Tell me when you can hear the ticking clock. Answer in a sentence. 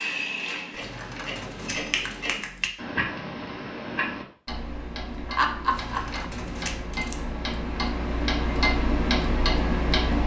The ticking clock can be heard from 0.0 to 10.2 s.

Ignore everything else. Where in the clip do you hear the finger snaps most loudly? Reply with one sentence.
The volume of the finger snaps peaks at 6 seconds.